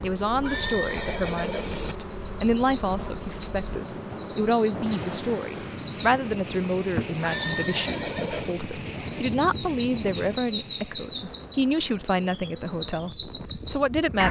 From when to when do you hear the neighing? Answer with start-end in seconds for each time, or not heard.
0.4-1.9, 7.2-8.6.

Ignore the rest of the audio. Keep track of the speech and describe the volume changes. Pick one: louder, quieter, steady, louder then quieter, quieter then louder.
steady.